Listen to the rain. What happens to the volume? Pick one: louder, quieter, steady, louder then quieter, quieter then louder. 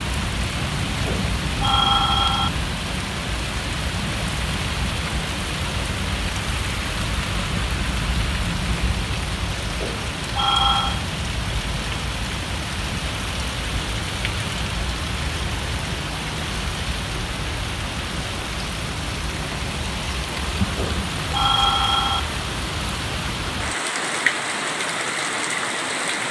steady.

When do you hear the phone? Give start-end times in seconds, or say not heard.
1.1-2.5, 9.8-11.0, 20.8-22.2.